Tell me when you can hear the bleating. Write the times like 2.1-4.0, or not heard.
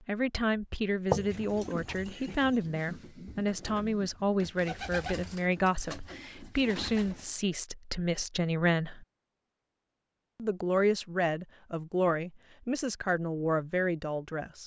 1.1-2.5.